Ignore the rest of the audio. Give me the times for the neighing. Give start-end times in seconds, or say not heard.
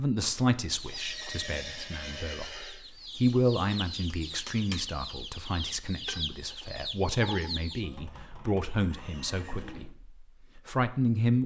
0.8-2.8, 7.8-9.8.